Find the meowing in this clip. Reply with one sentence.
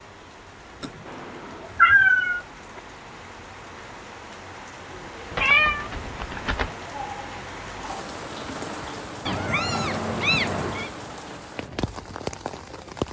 You can hear the meowing from 0.8 to 2.4 s, from 5.3 to 6.7 s and from 9.2 to 10.9 s.